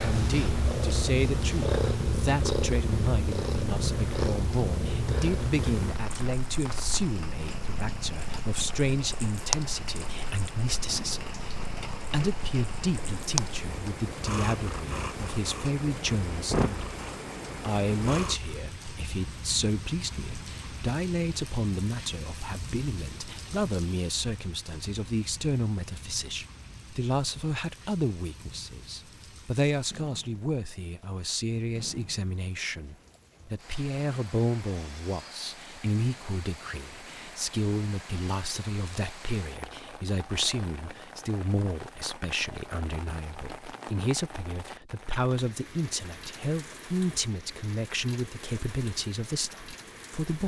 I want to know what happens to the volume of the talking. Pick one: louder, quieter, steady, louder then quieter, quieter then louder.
steady.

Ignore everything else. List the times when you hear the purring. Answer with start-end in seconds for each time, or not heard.
0.0-18.6.